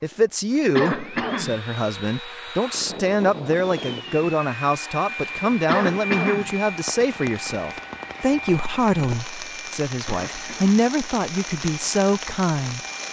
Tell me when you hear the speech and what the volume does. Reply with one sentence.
The speech can be heard from 0.0 to 12.8 s, at a steady volume.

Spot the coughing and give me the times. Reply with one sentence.
The coughing can be heard from 0.8 to 1.6 s, from 5.7 to 6.5 s and from 10.1 to 10.8 s.